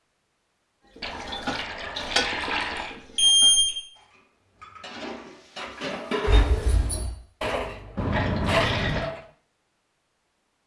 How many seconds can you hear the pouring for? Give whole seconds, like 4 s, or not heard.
3 s.